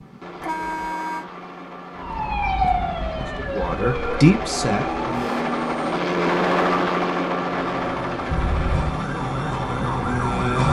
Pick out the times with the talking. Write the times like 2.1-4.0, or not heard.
3.4-5.3.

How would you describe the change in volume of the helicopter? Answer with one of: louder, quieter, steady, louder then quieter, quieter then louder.
louder then quieter.